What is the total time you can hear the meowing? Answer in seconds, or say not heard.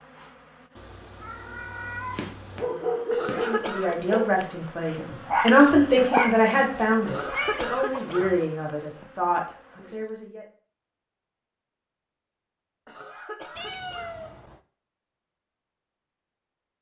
4 s.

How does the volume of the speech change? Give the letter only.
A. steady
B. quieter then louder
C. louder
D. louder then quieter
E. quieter
D.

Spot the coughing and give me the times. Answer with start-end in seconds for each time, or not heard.
3.1-4.0, 7.0-8.3, 12.8-14.2.